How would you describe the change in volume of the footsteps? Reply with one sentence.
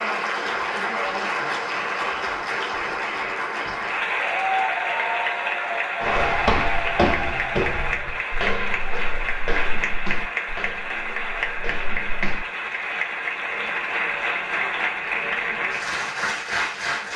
The volume of the footsteps goes down.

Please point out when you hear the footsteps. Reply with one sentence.
The footsteps can be heard from 6.0 to 12.4 s.